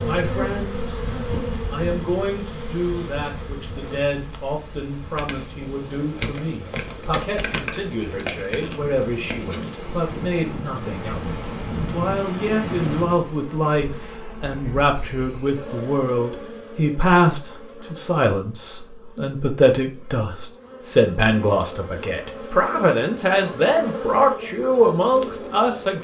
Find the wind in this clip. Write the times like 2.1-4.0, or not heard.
0.0-13.2.